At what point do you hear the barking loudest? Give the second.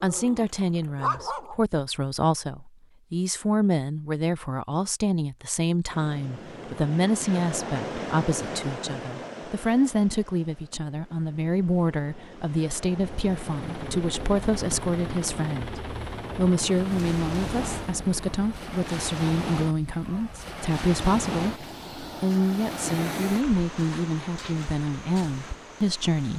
1 s.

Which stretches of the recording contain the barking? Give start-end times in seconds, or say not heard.
0.0-1.6.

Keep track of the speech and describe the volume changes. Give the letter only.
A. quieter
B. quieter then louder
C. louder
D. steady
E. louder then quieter
D.